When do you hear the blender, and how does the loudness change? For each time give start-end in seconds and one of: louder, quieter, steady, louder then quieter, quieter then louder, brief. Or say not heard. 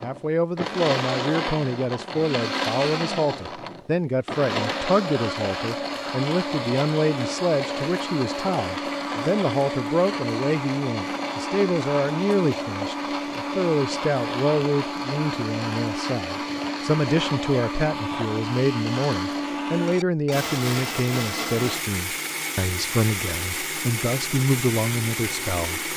0.0-25.9 steady.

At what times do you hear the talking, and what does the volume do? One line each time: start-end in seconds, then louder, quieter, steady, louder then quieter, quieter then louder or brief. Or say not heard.
0.0-25.9 steady.